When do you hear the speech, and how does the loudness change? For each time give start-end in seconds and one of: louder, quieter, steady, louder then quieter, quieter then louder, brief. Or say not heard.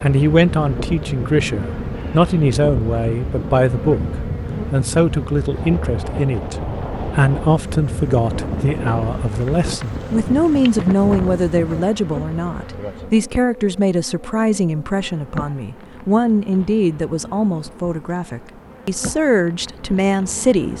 0.0-20.7 steady.